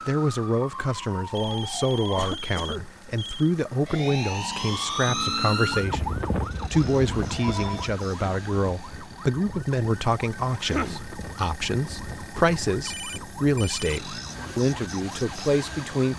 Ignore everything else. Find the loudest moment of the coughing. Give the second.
11 s.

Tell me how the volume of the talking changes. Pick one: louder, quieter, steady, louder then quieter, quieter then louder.
steady.